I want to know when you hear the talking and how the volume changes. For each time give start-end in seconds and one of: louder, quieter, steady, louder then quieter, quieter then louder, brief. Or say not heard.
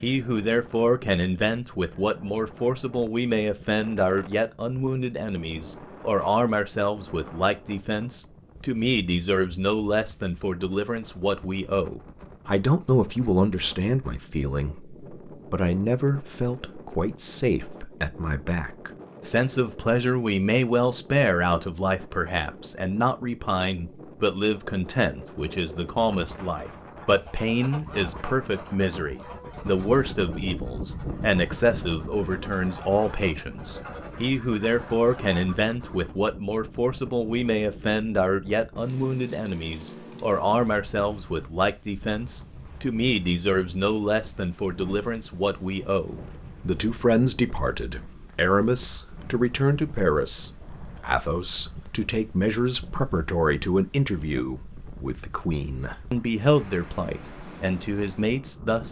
0.0-58.8 steady.